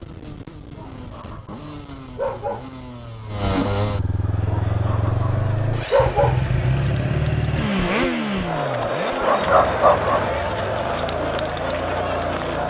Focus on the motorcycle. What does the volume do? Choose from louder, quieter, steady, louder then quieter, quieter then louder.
louder then quieter.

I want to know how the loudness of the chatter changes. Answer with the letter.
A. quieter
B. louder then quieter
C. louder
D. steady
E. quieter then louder
C.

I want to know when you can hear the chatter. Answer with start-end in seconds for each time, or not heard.
4.1-12.6.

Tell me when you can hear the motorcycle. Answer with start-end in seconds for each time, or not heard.
0.0-12.6.